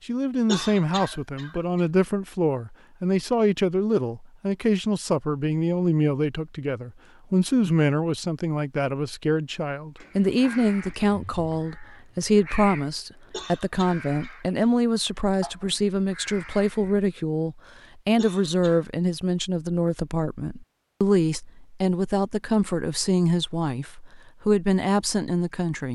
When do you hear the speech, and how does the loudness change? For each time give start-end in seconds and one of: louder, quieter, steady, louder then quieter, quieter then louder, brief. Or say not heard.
0.1-25.8 steady.